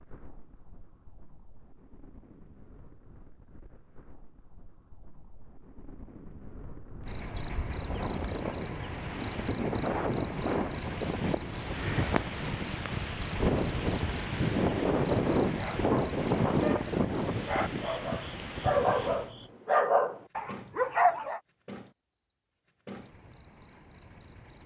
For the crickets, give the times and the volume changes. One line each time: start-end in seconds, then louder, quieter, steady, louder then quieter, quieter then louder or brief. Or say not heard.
7.0-24.6 quieter.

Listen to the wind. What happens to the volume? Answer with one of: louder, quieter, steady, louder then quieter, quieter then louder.
louder.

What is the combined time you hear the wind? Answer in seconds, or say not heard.
19 s.